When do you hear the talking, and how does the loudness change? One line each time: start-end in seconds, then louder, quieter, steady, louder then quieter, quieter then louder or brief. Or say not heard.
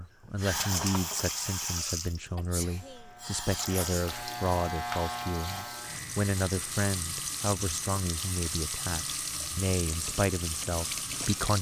0.0-11.5 steady.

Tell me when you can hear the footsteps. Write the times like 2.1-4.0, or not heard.
not heard.